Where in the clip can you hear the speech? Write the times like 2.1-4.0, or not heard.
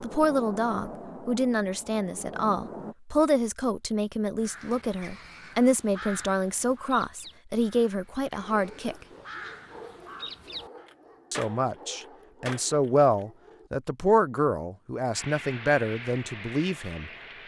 0.0-8.9, 11.3-17.4.